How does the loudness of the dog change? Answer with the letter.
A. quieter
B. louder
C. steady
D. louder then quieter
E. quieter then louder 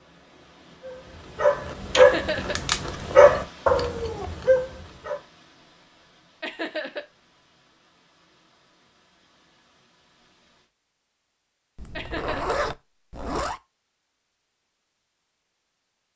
D.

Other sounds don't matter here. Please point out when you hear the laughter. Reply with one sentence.
The laughter can be heard from 1.9 to 2.5 s, from 6.4 to 7.0 s and from 11.9 to 12.6 s.